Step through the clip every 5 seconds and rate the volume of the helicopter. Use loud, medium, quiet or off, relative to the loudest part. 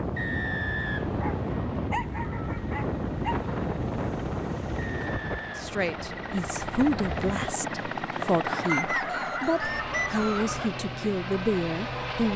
medium, loud, loud.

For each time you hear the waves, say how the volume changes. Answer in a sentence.
You can hear the waves from 0.0 to 7.5 s, getting quieter.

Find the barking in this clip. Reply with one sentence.
You can hear the barking from 1.2 to 3.5 s and from 8.4 to 10.7 s.